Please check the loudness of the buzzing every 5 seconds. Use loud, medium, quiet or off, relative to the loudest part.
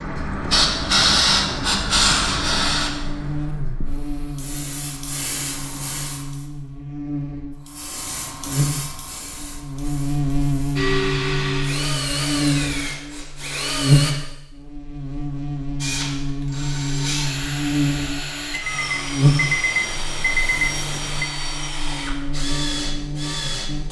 medium, medium, loud, loud, medium.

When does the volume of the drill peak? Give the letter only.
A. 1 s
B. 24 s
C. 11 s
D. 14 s
C.